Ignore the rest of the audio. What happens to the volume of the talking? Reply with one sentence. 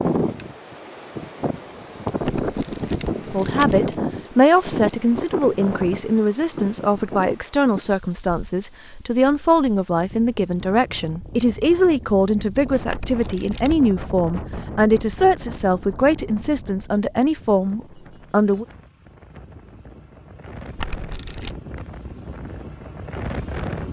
The loudness of the talking stays about the same.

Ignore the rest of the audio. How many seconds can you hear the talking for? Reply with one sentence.
You can hear the talking for 15 seconds altogether.